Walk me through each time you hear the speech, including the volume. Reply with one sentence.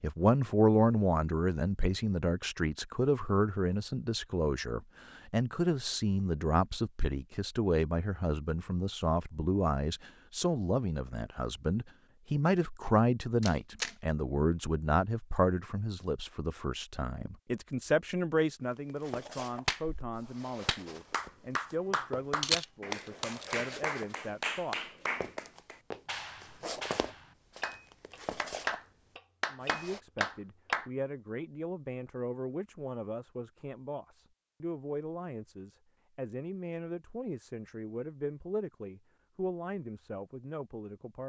The speech can be heard from 0.0 to 24.8 s, getting quieter; and from 29.5 to 41.2 s, at a steady volume.